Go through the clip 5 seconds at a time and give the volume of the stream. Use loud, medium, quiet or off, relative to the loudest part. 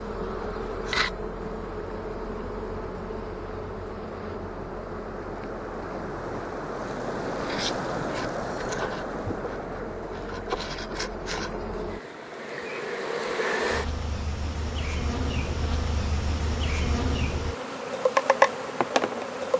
medium, loud, medium, medium.